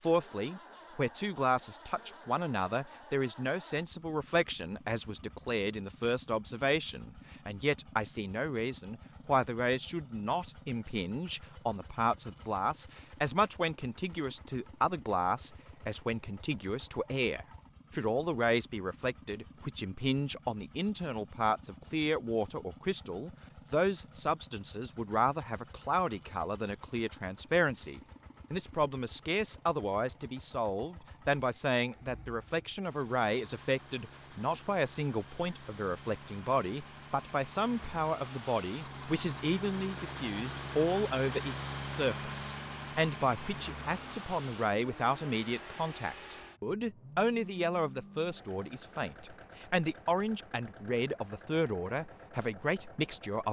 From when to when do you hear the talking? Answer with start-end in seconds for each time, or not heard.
0.0-53.4.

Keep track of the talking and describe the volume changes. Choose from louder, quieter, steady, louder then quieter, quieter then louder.
steady.